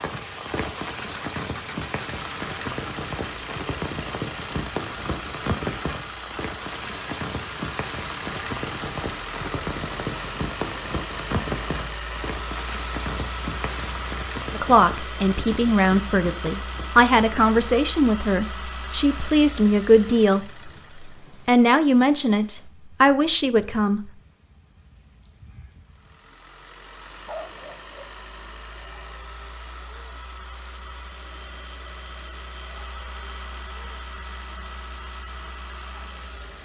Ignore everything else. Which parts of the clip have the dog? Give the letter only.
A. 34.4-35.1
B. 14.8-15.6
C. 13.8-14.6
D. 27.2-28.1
D.